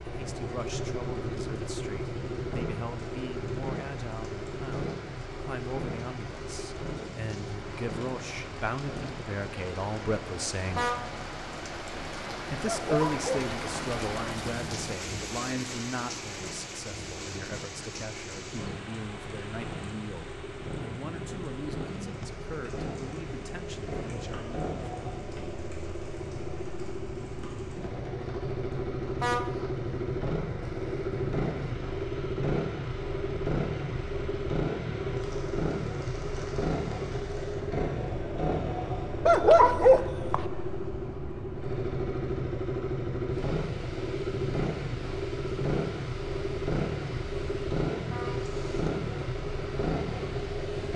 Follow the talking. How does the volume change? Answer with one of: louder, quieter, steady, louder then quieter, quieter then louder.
louder then quieter.